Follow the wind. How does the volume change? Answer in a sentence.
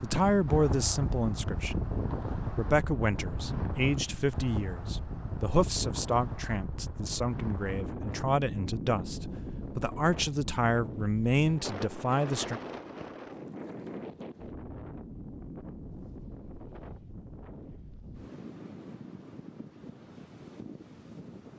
The volume of the wind goes down.